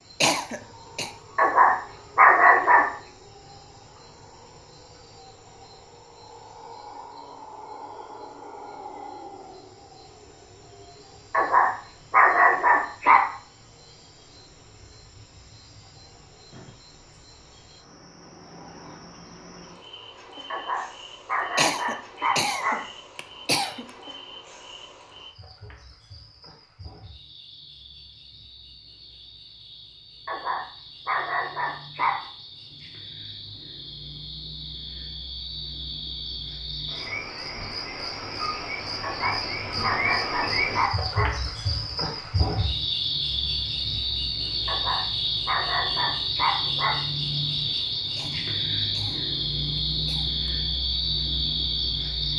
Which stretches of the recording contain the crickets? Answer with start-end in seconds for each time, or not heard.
0.0-52.3.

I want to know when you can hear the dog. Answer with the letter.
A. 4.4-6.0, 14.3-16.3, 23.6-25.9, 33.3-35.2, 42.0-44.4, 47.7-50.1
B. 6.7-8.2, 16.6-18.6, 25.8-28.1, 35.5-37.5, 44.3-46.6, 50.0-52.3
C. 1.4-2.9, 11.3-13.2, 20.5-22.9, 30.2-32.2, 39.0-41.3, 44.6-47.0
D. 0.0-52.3
C.